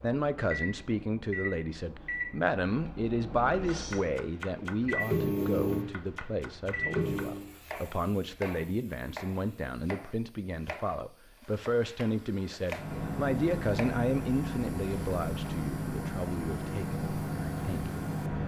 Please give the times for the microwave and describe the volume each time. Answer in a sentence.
The microwave can be heard from 0.0 to 7.5 s, getting louder; and from 12.8 to 18.4 s, at a steady volume.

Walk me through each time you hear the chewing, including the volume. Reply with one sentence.
You can't hear the chewing here.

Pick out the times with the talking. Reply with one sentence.
You can hear the talking from 0.0 to 17.9 s.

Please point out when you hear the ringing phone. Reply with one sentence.
The ringing phone can't be heard in this clip.